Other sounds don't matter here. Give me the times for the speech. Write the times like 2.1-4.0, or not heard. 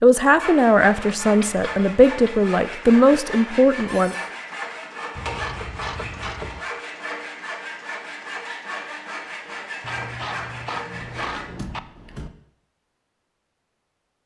0.0-4.2.